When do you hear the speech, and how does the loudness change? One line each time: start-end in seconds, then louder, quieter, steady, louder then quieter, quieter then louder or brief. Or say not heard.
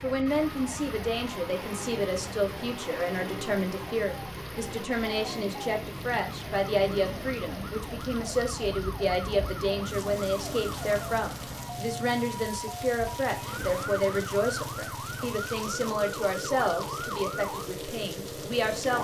0.0-18.9 steady.